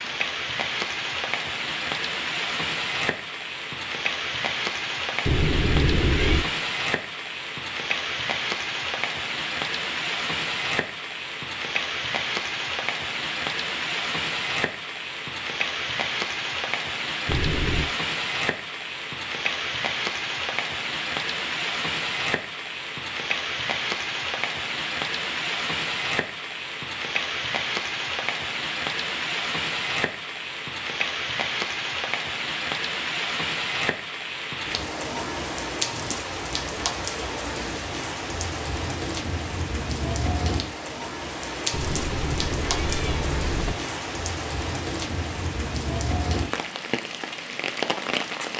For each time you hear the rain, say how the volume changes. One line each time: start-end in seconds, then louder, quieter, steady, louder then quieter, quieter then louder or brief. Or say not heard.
0.0-48.5 steady.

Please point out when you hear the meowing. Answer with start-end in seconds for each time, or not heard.
5.2-6.5, 17.2-17.9, 41.7-43.8.